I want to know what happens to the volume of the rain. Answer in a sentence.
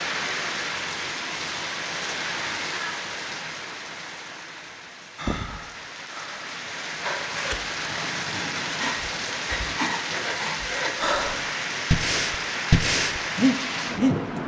The loudness of the rain goes down, then up.